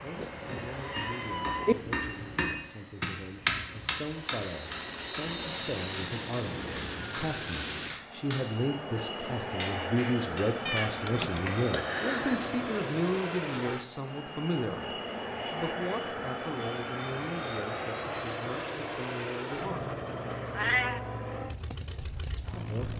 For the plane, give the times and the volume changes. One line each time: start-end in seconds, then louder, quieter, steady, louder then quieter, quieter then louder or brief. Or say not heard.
0.0-22.9 louder.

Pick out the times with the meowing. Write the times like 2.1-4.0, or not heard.
0.5-1.8, 10.7-12.5, 20.5-21.0.